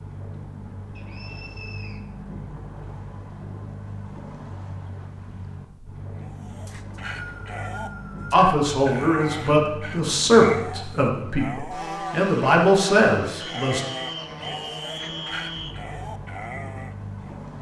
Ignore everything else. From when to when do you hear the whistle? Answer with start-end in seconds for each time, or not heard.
0.9-2.0, 6.7-8.4, 13.4-15.8.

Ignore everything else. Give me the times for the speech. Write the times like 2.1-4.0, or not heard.
8.3-13.8.